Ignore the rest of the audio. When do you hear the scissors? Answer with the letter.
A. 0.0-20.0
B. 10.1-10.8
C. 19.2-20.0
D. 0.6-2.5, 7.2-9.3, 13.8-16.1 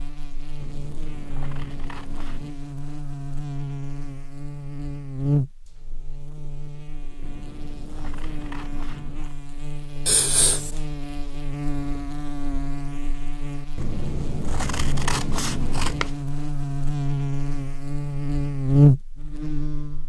D.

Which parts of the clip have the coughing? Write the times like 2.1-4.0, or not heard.
10.1-10.8.